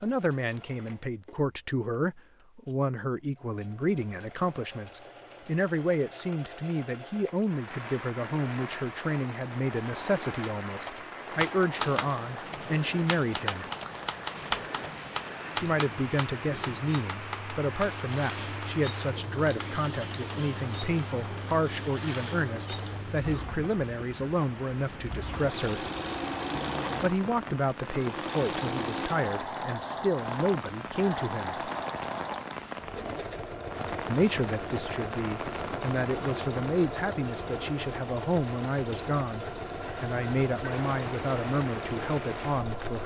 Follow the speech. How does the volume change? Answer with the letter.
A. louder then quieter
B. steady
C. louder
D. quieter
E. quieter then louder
B.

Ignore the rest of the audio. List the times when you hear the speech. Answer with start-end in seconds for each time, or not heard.
0.0-13.7, 15.6-25.9, 27.0-31.7, 34.0-43.0.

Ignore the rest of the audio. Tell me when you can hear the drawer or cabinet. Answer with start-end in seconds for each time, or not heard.
not heard.